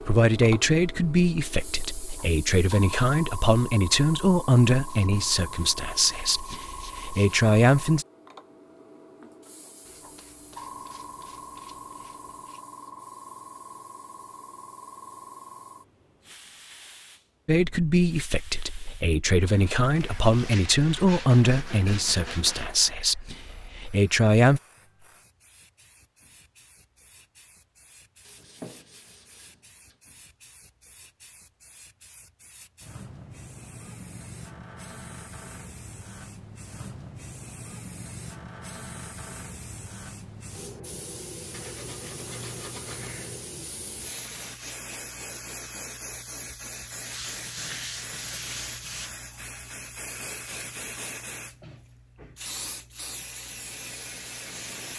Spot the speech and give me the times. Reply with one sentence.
You can hear the speech from 0.0 to 8.1 s and from 17.4 to 24.6 s.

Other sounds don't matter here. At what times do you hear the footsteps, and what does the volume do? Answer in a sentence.
You can't hear the footsteps here.